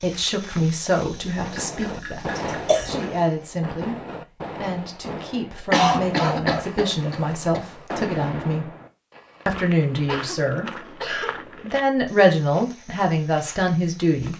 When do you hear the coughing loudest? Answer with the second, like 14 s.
6 s.